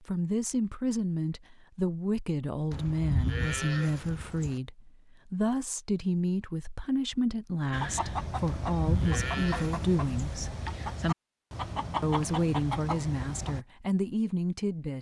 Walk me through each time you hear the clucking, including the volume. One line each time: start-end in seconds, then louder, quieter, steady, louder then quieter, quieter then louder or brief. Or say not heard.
7.7-13.7 steady.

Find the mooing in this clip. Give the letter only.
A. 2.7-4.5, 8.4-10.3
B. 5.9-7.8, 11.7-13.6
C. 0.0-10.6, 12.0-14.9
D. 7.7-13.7
A.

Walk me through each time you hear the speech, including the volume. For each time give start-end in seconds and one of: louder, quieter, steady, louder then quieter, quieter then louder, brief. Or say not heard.
0.0-10.6 steady
12.0-14.9 brief.